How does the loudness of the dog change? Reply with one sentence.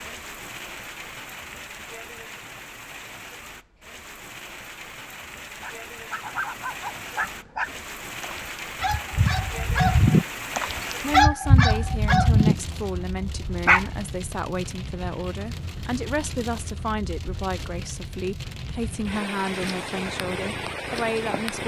The loudness of the dog goes up.